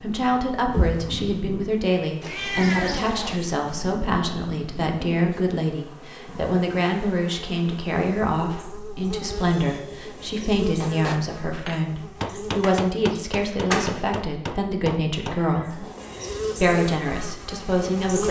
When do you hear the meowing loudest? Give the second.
3 s.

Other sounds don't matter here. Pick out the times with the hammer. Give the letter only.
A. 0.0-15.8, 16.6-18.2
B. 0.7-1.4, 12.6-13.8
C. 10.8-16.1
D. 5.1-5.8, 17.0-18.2
C.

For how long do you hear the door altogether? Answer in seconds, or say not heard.
2 s.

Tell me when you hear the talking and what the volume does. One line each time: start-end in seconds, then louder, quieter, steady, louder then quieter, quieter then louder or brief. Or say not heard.
0.0-15.8 steady
16.6-18.2 brief.